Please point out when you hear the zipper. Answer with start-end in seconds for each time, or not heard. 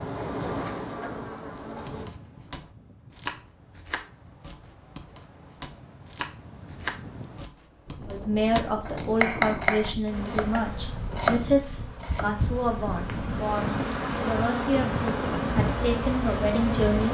not heard.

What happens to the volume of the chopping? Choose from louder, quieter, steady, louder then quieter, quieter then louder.
quieter then louder.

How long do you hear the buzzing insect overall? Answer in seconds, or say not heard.
9 s.